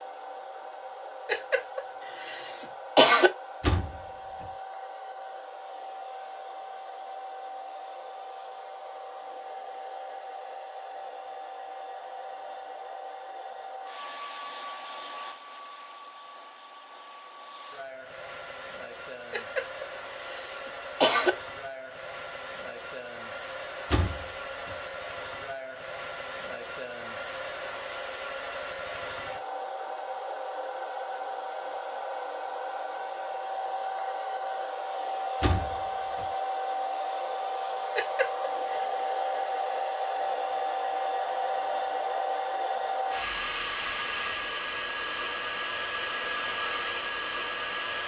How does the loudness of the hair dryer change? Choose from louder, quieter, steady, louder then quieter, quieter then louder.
louder.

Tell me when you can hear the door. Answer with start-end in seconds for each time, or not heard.
3.6-4.5, 23.9-24.8, 35.4-36.2.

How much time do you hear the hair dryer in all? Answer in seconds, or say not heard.
48 s.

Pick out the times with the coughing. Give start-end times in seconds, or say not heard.
1.2-3.3, 19.3-21.3, 38.0-38.9.